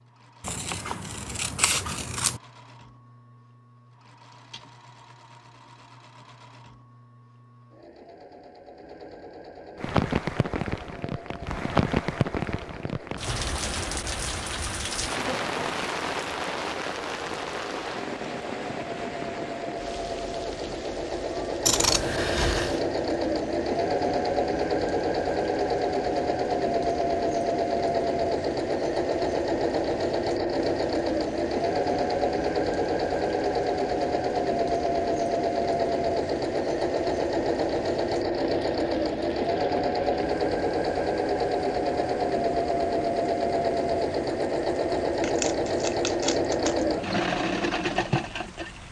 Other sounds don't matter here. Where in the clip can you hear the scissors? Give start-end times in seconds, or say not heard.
0.4-2.4, 21.6-22.8, 45.2-46.9.